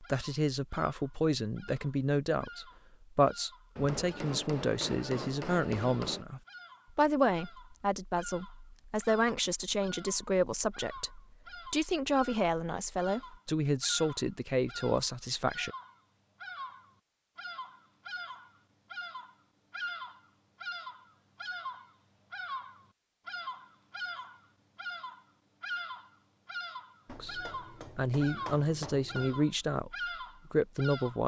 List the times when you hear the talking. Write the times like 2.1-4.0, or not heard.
0.0-15.7, 27.1-31.2.